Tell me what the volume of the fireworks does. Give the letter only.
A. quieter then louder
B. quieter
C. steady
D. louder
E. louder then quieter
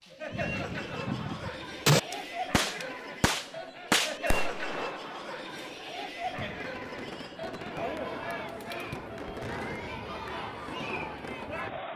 B.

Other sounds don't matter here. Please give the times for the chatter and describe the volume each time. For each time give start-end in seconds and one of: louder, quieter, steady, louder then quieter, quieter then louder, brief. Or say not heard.
0.0-11.9 steady.